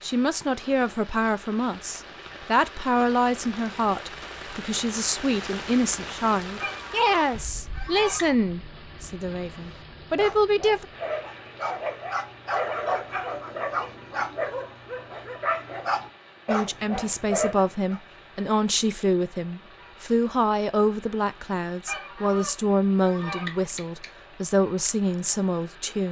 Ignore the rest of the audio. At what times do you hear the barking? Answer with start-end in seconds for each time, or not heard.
9.6-18.0.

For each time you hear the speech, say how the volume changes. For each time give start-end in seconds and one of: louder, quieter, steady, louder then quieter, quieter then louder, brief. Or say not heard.
0.0-10.8 steady
16.4-26.0 steady.